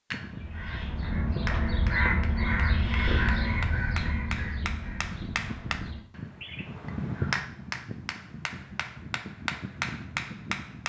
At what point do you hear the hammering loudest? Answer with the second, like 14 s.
7 s.